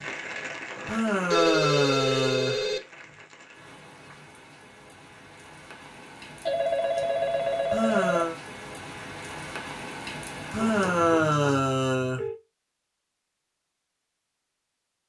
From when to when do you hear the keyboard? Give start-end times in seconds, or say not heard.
not heard.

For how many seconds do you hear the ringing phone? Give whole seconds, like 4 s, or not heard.
5 s.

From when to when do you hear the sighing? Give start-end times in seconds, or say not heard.
0.8-2.6, 7.7-8.3, 10.5-12.2.